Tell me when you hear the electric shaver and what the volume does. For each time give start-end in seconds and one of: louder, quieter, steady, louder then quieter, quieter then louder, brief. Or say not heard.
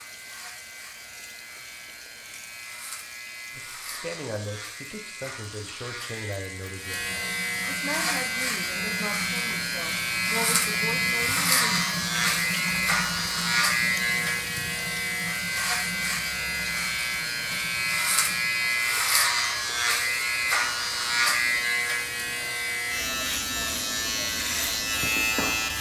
0.0-25.7 louder.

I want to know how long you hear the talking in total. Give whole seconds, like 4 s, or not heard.
8 s.